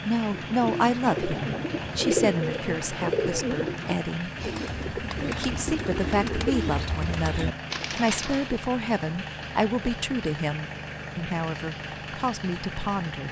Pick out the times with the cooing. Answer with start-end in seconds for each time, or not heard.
0.3-8.4.